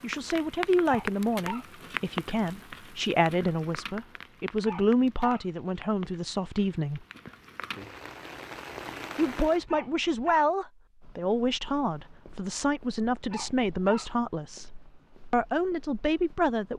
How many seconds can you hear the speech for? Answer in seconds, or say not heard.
14 s.